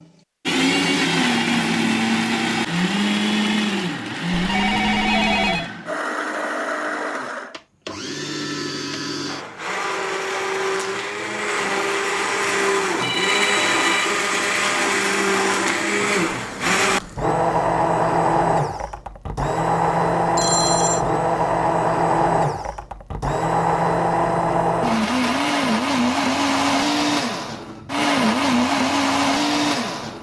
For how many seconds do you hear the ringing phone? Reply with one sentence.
The ringing phone can be heard for 3 seconds in total.